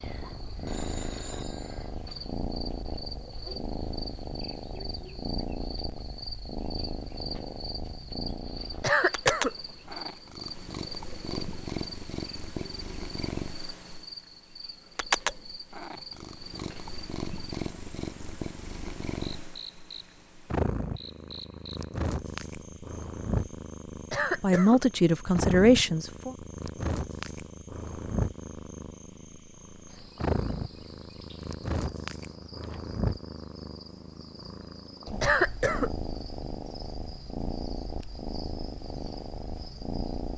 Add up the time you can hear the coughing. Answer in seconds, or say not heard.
2 s.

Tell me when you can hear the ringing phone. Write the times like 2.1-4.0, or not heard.
0.7-2.0.